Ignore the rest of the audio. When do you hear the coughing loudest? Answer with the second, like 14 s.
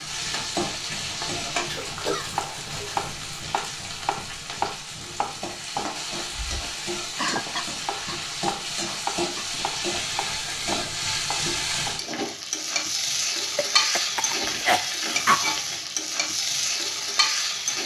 15 s.